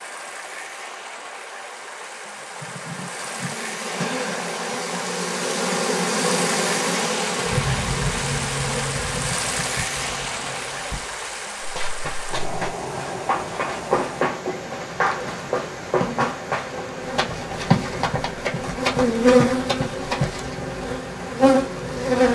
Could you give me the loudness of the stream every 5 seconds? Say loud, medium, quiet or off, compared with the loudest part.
medium, loud, loud, medium, medium.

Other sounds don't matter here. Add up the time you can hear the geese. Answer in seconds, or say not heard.
not heard.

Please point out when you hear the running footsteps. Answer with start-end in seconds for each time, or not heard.
11.6-20.4.